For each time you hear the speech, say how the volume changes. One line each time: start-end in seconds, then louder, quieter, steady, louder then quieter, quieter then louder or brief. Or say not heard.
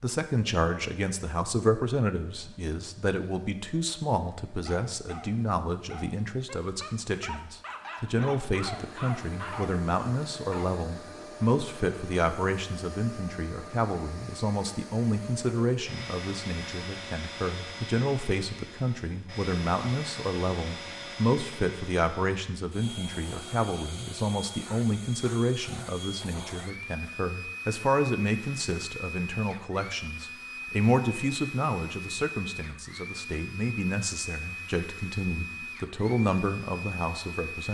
0.0-37.6 steady.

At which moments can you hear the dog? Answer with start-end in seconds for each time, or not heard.
4.7-10.7.